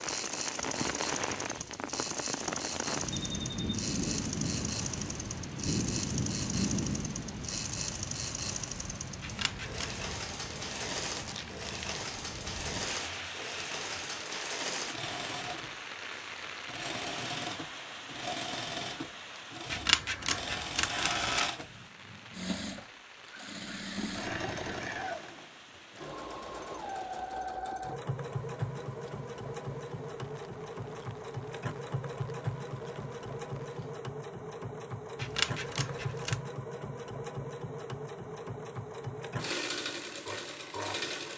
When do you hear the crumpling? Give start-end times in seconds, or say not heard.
11.1-12.2.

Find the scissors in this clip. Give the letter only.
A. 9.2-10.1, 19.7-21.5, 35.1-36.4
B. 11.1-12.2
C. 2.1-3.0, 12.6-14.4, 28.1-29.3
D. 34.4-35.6
A.